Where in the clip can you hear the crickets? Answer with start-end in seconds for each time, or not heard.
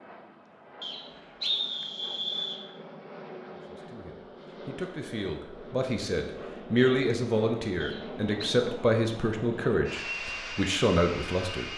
not heard.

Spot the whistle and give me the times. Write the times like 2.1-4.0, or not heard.
0.8-2.6, 7.8-8.6.